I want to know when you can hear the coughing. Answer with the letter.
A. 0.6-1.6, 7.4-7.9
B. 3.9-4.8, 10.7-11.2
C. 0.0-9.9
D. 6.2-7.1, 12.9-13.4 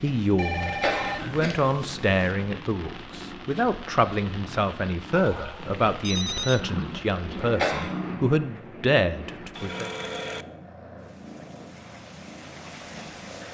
A.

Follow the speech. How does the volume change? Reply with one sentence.
The volume of the speech stays about the same.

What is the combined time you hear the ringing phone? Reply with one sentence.
The ringing phone can be heard for 4 seconds in total.